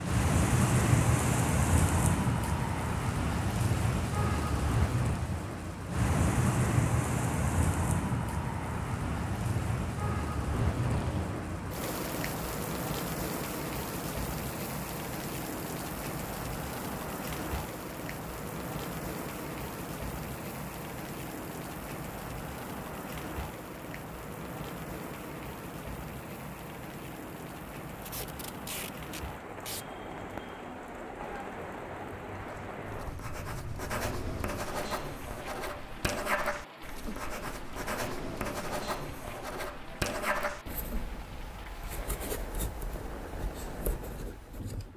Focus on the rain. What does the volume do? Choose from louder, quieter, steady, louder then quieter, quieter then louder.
quieter.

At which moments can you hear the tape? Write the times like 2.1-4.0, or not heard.
10.4-11.4, 28.0-29.9.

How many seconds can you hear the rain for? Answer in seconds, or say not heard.
45 s.